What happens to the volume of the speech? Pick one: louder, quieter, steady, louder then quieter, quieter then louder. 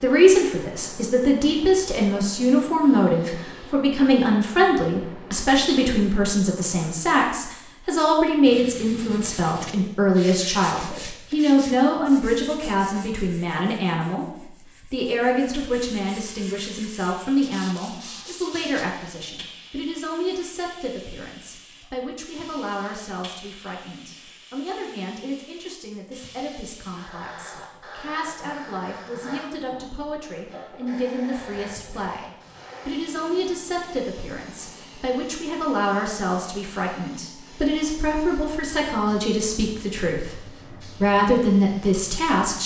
quieter then louder.